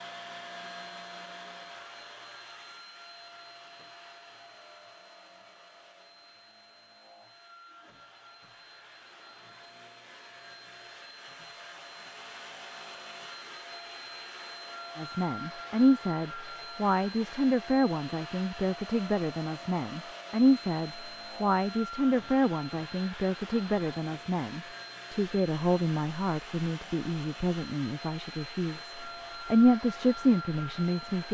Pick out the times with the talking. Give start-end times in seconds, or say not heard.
14.9-31.2.